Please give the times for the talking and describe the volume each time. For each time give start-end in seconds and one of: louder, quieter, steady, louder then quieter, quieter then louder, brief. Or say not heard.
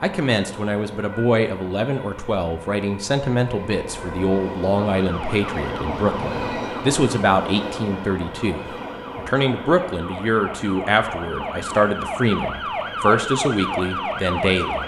0.0-14.8 steady.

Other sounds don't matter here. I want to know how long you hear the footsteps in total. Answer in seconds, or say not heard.
not heard.